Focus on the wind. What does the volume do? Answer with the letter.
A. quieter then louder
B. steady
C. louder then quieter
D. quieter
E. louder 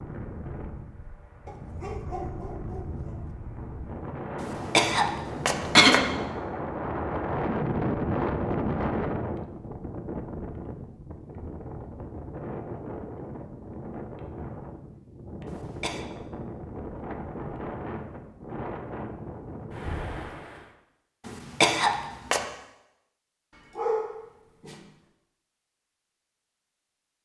C.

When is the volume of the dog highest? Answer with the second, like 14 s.
24 s.